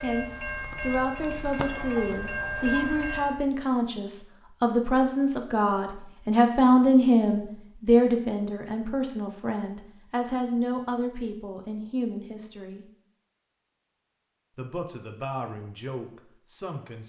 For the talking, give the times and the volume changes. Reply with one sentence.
The talking can be heard from 0.0 to 12.8 s, getting louder then quieter; and briefly from 14.6 to 17.0 s.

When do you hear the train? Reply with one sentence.
You can hear the train from 0.0 to 3.5 s.